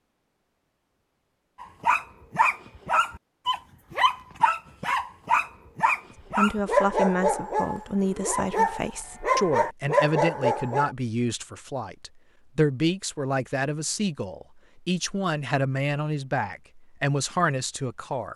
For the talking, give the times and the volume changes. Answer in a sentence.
You can hear the talking from 6.3 to 18.3 s, at a steady volume.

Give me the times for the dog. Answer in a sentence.
You can hear the dog from 1.6 to 10.9 s.